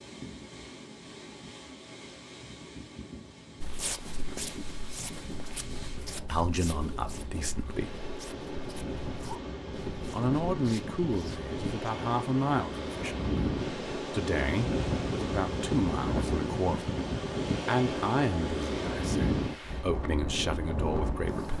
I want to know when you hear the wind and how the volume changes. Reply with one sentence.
You can hear the wind from 0.0 to 21.5 s, getting louder.